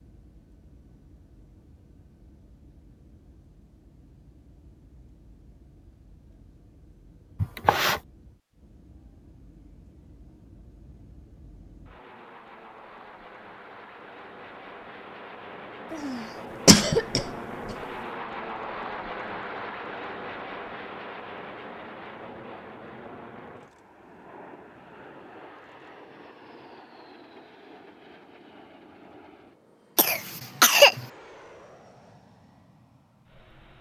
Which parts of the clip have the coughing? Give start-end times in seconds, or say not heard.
7.4-8.0, 15.9-17.7, 29.9-31.1.